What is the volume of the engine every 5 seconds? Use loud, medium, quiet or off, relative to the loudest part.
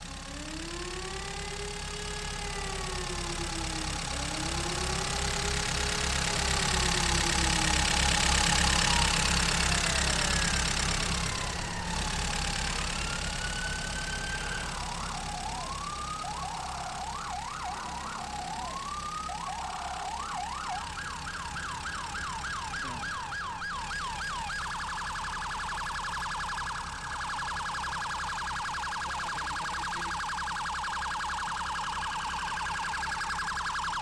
medium, loud, medium, quiet, quiet, quiet, quiet.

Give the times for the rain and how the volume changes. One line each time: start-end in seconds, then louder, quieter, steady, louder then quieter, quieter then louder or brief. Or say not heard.
not heard.